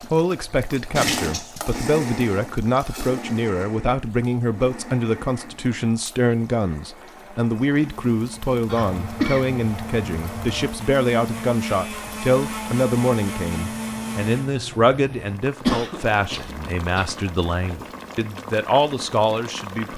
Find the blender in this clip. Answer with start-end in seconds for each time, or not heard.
0.0-14.6.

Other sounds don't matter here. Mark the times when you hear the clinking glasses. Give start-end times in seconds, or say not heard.
not heard.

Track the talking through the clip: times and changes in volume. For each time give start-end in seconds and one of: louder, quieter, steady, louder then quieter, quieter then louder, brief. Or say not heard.
0.1-19.9 steady.